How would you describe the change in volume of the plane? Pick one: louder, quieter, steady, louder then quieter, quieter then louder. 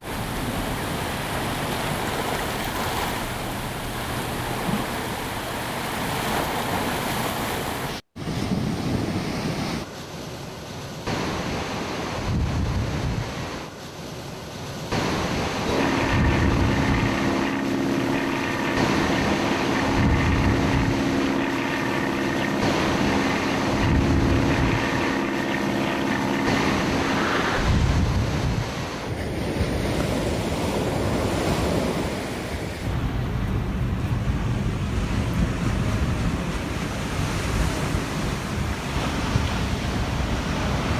steady.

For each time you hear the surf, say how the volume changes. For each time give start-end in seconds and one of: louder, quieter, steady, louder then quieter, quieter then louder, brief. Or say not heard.
0.0-40.9 steady.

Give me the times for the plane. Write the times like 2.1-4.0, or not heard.
15.7-28.1.